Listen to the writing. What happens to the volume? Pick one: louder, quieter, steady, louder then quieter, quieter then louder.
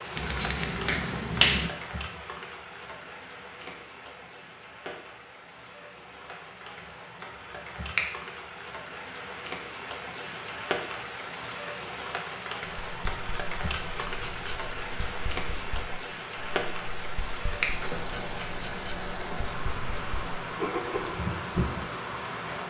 louder.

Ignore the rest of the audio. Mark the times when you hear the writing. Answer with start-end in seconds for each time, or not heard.
12.7-22.1.